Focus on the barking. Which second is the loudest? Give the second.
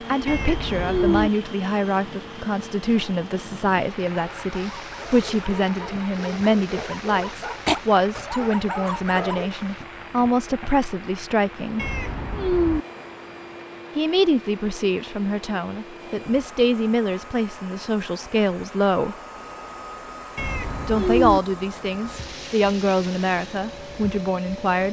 8 s.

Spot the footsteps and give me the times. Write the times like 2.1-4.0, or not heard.
not heard.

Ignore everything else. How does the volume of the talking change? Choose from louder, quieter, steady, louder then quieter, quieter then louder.
steady.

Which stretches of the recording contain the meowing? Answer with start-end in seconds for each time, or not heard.
0.2-1.3, 11.8-12.8, 20.4-21.4.